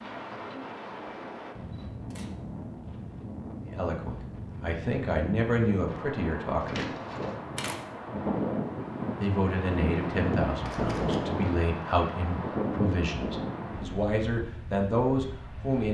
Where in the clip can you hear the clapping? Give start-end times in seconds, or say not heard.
not heard.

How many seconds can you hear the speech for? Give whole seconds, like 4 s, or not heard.
10 s.